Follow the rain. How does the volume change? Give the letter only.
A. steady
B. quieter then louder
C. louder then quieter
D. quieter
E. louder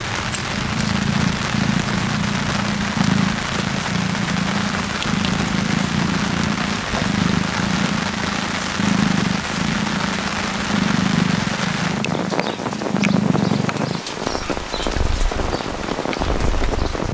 A.